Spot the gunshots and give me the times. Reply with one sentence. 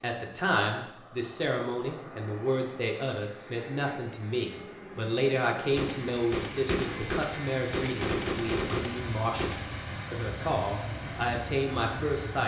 The gunshots can be heard from 5.8 to 9.7 s.